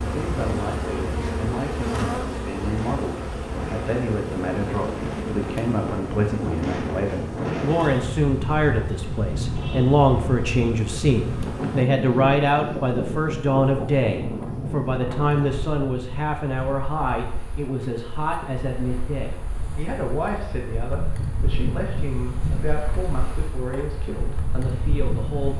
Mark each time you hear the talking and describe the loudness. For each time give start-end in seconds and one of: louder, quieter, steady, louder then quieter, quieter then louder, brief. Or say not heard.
0.0-25.5 louder then quieter.